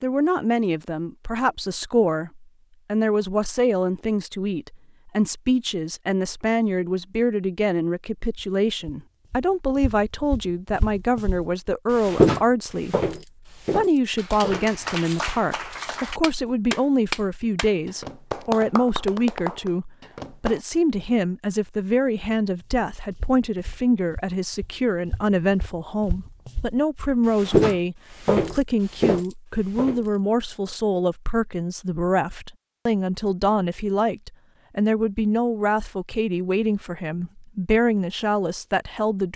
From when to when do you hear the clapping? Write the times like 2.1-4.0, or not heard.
14.2-20.6.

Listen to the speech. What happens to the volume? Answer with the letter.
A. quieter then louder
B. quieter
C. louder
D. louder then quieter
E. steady
E.